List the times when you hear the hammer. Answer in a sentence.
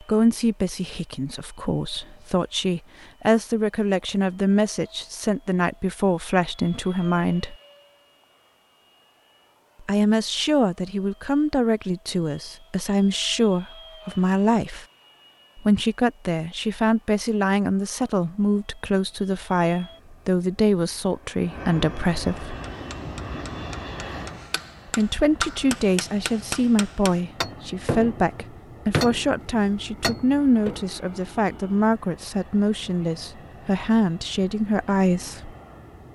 You can hear the hammer from 22.4 to 30.9 s.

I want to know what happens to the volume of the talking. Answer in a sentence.
The loudness of the talking stays about the same.